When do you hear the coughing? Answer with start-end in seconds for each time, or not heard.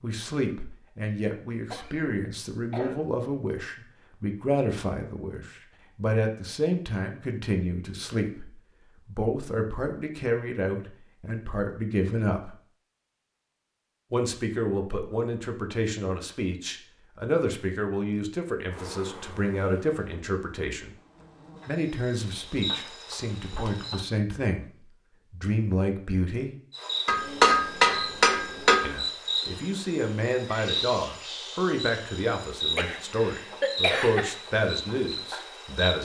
1.6-3.0, 32.7-34.4.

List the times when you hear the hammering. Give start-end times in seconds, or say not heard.
27.1-28.9.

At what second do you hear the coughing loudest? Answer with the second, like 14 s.
34 s.